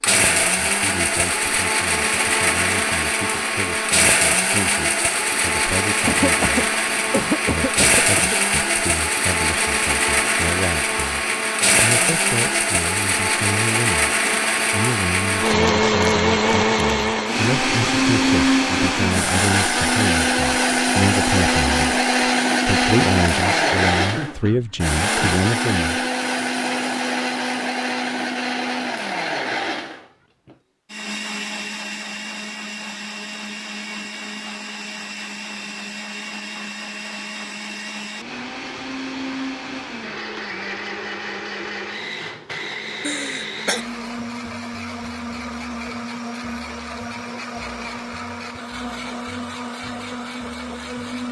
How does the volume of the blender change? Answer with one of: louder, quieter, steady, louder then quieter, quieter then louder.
quieter.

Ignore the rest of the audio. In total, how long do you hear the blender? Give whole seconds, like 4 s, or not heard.
51 s.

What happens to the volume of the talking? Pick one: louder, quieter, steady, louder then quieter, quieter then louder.
louder.